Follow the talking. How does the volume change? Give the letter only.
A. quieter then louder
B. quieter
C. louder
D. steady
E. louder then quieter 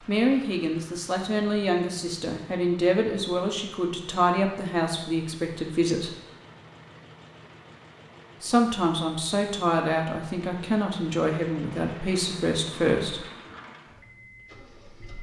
D.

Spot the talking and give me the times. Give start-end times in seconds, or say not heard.
0.1-6.1, 8.4-13.2.